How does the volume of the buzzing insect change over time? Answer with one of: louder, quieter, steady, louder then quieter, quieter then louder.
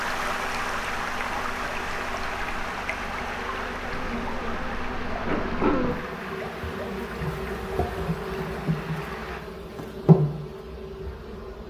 louder.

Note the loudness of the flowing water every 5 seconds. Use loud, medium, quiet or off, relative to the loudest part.
loud, medium, off.